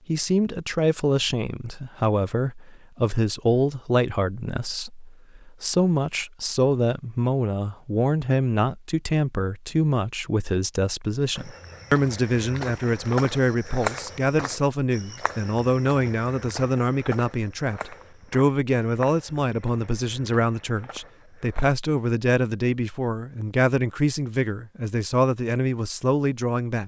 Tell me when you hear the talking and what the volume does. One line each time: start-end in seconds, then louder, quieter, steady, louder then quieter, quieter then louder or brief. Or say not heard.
0.1-26.8 steady.